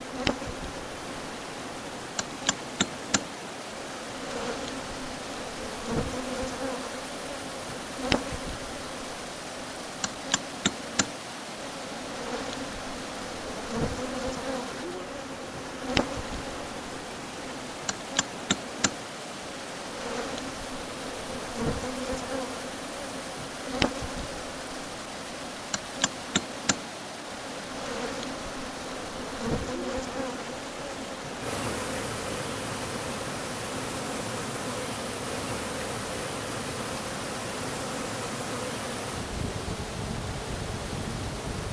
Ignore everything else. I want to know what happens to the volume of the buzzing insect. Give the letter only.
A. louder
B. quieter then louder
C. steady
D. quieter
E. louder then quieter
C.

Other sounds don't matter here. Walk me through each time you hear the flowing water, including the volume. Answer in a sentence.
The flowing water can be heard from 0.0 to 41.6 s, at a steady volume.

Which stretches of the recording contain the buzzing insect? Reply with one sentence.
You can hear the buzzing insect from 0.0 to 41.6 s.